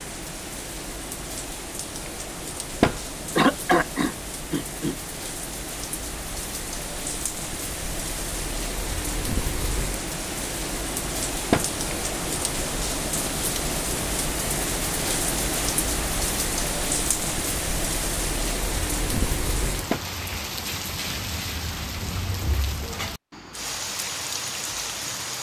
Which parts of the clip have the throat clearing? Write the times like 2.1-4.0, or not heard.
3.4-5.0.